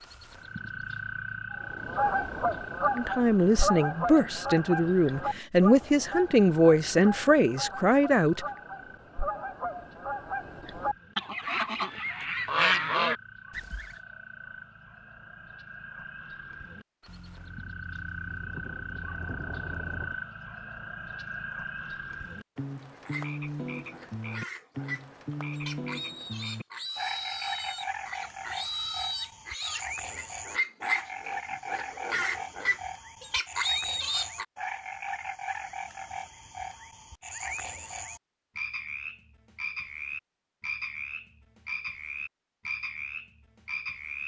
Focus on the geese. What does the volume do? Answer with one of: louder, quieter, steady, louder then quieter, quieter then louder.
quieter then louder.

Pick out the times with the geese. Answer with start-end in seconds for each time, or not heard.
1.5-13.9.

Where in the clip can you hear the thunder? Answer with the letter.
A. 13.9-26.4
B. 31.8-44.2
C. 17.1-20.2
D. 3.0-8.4
C.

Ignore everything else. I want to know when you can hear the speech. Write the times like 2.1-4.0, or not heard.
3.0-8.4.